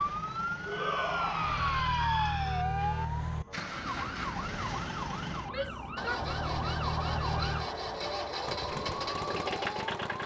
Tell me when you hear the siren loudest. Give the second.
2 s.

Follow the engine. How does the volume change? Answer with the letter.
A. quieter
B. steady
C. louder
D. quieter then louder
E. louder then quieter
C.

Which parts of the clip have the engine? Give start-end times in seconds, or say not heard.
0.0-10.2.